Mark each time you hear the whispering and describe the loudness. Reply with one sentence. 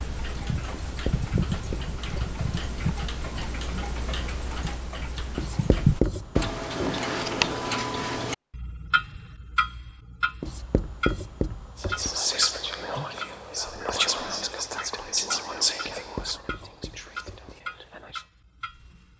The whispering can be heard from 11.8 to 18.2 s, getting quieter.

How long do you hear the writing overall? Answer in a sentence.
You can hear the writing for 6 seconds altogether.